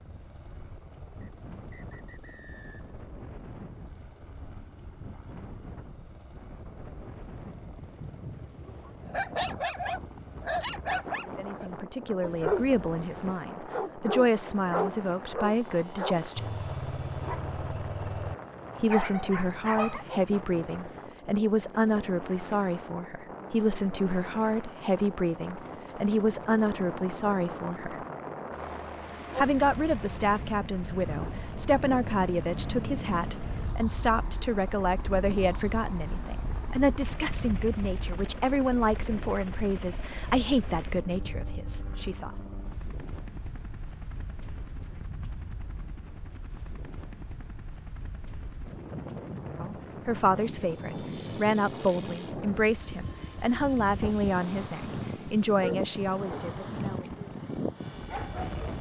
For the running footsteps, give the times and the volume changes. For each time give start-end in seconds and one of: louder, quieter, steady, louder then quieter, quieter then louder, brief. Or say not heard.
not heard.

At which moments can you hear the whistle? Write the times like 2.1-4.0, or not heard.
1.2-3.0.